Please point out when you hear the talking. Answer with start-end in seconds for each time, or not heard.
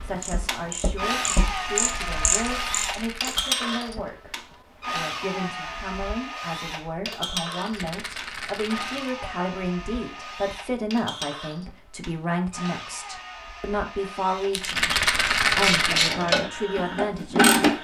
0.0-14.9, 15.6-17.6.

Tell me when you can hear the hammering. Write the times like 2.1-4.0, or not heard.
not heard.